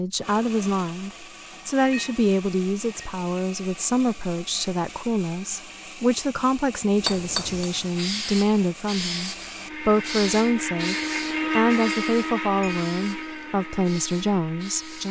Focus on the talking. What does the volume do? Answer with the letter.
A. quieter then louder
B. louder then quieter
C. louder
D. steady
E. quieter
D.